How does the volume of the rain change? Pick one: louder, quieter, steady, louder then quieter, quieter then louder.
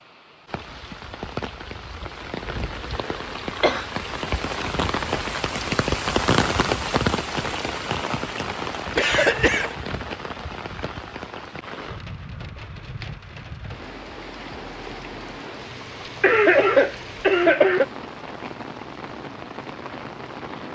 louder then quieter.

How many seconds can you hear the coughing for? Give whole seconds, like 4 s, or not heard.
4 s.